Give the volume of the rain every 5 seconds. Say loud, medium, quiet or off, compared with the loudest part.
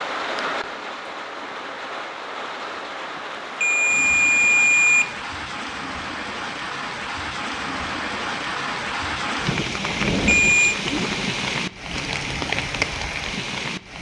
medium, loud, loud.